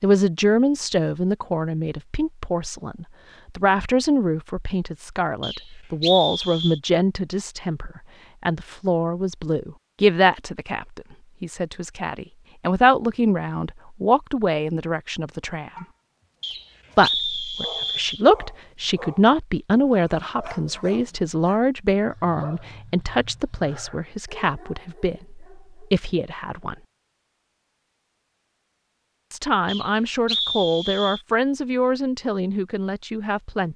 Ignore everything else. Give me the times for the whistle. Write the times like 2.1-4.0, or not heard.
5.4-6.8, 16.4-18.2, 29.6-31.2.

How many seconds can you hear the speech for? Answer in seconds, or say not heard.
30 s.